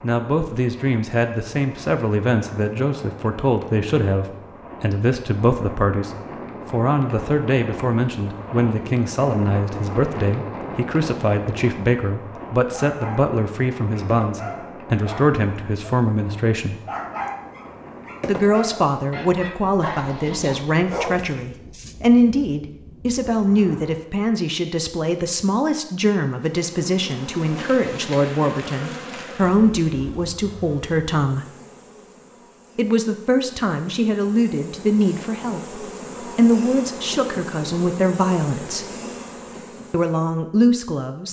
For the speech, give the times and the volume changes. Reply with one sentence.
The speech can be heard from 0.0 to 16.8 s, at a steady volume; from 18.2 to 31.4 s, at a steady volume; from 32.8 to 38.9 s, getting quieter then louder; and briefly from 39.9 to 41.2 s.